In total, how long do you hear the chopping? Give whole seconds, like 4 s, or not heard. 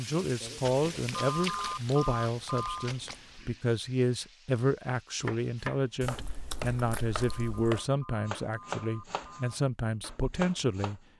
6 s.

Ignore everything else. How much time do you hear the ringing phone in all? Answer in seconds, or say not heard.
4 s.